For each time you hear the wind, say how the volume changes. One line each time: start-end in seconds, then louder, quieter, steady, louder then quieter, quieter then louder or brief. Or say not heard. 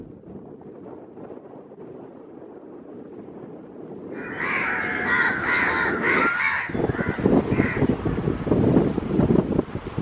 0.0-9.9 louder.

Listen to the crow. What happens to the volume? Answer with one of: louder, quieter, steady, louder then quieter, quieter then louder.
quieter.